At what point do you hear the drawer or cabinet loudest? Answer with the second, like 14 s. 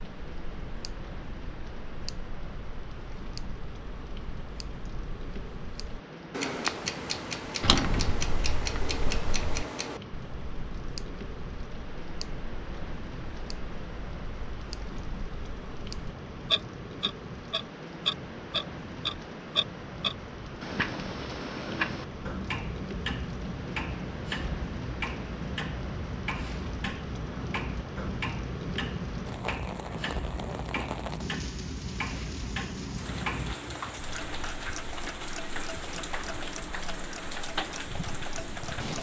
8 s.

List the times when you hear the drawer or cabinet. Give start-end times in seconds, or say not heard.
7.6-9.7.